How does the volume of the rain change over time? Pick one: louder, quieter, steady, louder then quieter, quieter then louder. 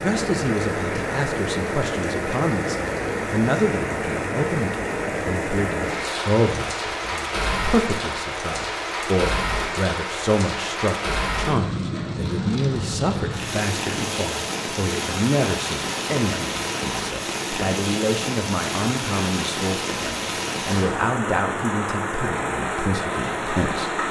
steady.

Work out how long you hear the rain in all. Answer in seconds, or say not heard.
24 s.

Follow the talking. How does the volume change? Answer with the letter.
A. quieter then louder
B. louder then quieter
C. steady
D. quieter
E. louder
C.